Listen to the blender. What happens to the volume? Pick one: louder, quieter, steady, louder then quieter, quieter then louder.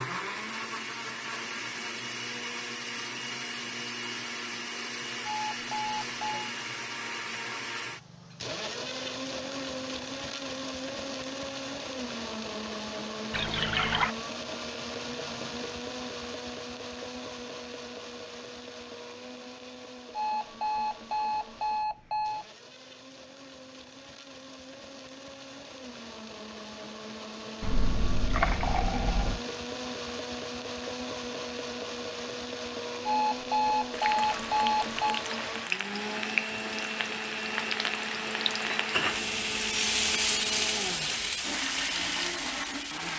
quieter then louder.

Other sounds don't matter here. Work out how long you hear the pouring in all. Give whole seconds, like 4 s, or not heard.
3 s.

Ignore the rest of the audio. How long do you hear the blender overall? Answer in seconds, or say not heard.
43 s.